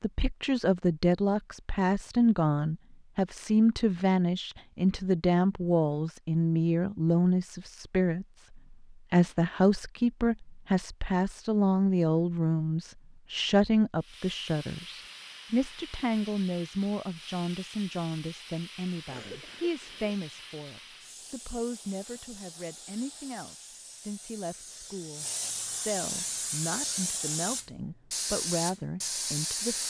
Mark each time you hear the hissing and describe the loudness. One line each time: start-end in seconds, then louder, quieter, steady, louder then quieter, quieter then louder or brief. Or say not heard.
13.9-29.8 louder.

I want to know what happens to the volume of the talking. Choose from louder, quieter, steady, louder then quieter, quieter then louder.
quieter.